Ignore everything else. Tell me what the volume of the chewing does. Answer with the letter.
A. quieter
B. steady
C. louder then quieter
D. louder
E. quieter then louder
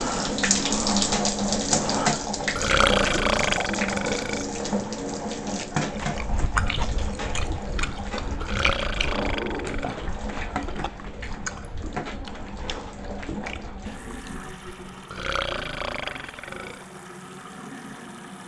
A.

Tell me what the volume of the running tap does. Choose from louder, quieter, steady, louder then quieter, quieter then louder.
quieter.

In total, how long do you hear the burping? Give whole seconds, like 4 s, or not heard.
5 s.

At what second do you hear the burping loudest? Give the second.
3 s.